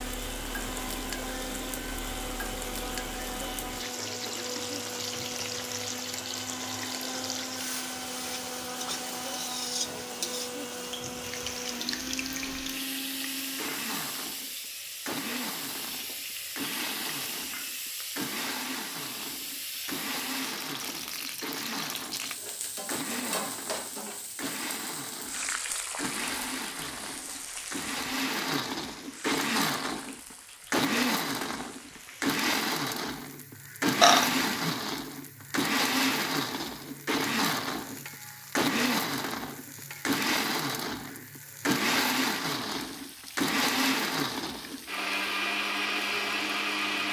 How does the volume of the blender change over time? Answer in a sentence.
The loudness of the blender goes up.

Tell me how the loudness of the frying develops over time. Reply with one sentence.
The volume of the frying goes down.